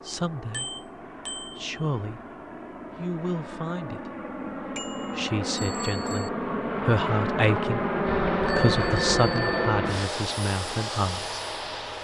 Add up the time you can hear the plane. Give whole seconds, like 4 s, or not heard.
12 s.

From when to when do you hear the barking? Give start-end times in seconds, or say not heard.
not heard.